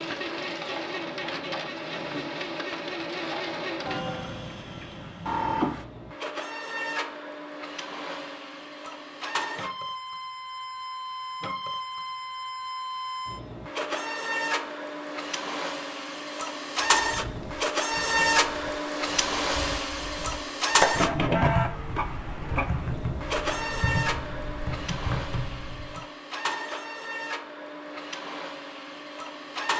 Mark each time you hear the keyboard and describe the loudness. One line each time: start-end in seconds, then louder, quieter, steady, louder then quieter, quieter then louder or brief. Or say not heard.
17.1-26.1 louder then quieter.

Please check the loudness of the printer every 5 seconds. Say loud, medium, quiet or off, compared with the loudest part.
medium, medium, medium, loud, loud, medium.